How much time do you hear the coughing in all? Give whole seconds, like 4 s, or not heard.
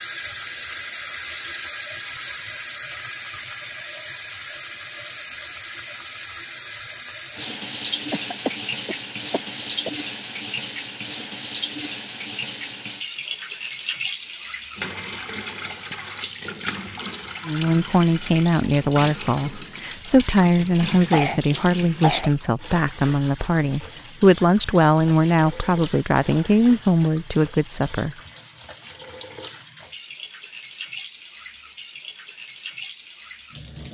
3 s.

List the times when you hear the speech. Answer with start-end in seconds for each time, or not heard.
17.4-28.1.